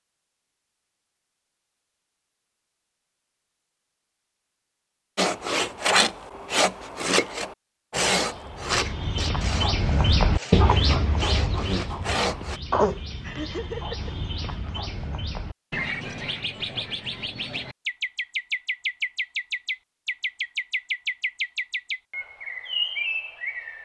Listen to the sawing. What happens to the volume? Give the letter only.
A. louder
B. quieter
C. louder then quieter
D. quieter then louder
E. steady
D.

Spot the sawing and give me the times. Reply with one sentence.
The sawing can be heard from 5.2 to 12.6 s.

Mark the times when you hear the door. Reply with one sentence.
The door can't be heard in this clip.